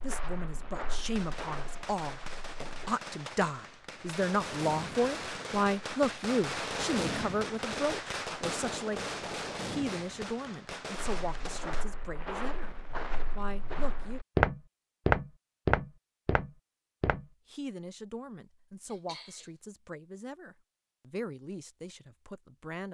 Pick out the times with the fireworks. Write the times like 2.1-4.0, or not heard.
1.1-11.8.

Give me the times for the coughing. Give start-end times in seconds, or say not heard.
18.9-19.5.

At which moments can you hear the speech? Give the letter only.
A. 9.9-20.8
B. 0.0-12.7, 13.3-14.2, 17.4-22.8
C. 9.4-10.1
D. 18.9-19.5
B.